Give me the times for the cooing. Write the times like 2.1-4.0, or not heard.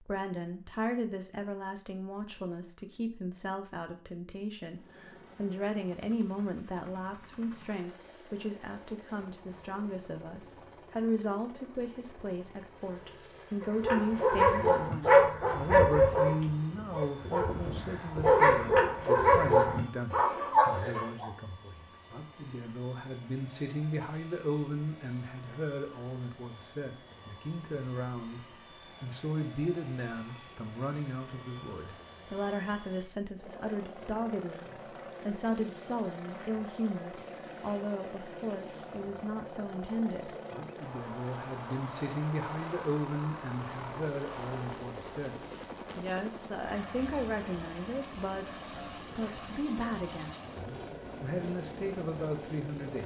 not heard.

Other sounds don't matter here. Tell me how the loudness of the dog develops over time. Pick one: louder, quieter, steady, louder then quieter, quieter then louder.
quieter then louder.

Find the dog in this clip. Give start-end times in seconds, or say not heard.
13.6-21.3.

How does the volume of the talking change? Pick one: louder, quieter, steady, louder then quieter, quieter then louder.
steady.